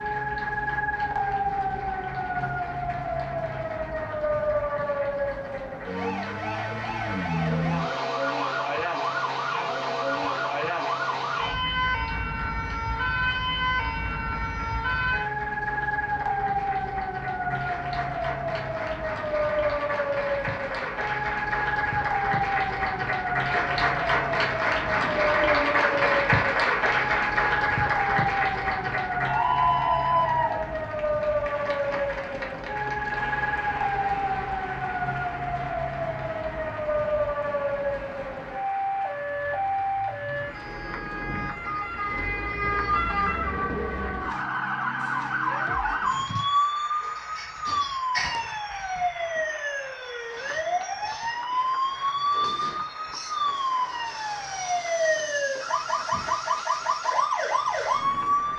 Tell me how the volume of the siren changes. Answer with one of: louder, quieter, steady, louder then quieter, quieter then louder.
steady.